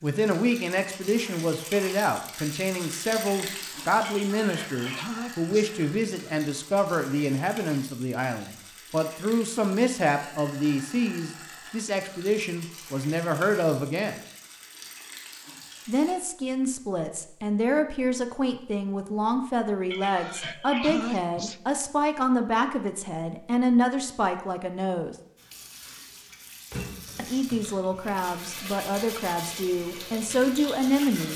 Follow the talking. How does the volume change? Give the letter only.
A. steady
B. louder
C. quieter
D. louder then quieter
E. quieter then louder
A.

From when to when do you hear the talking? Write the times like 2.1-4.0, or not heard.
0.0-14.2, 15.8-25.1, 27.1-31.3.